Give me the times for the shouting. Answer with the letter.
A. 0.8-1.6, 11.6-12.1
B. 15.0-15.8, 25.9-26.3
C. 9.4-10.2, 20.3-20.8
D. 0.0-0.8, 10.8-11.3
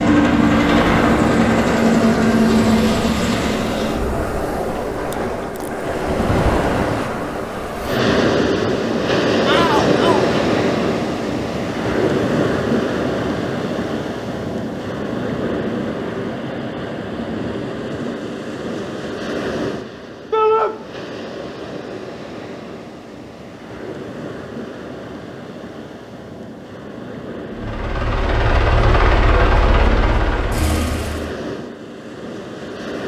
C.